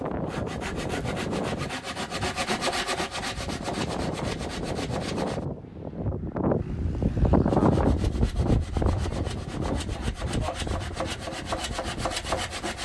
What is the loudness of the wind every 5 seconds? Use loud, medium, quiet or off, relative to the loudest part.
medium, loud, medium.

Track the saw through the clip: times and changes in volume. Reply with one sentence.
You can hear the saw from 0.0 to 5.5 s, getting louder then quieter; and from 7.5 to 12.8 s, getting louder.